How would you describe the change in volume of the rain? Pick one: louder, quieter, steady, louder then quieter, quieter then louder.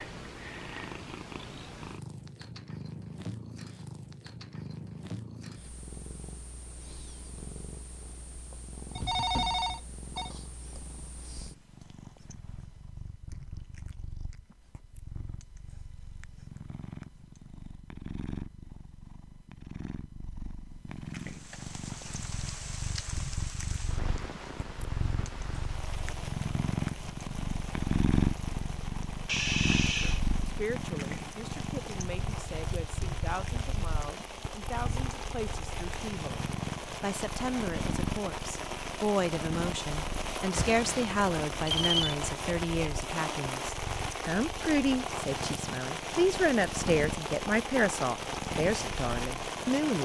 louder.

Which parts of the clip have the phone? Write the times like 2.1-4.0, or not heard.
8.9-10.3, 29.2-30.2, 40.5-42.1.